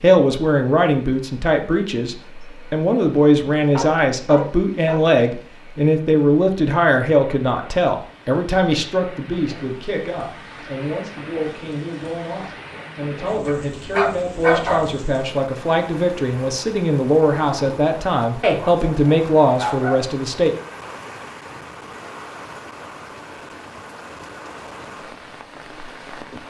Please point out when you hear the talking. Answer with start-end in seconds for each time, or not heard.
0.0-20.6.